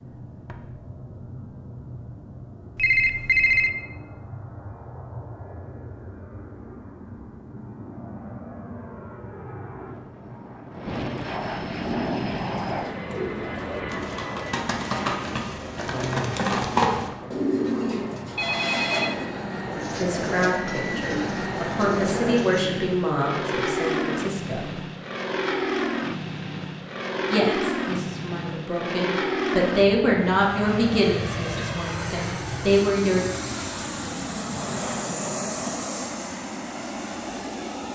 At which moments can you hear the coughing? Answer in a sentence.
The coughing can't be heard in this clip.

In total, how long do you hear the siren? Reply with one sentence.
You can't hear the siren here.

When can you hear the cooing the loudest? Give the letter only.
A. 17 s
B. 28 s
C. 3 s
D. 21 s
A.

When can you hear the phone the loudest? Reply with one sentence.
The loudest moment of the phone is at 3 seconds.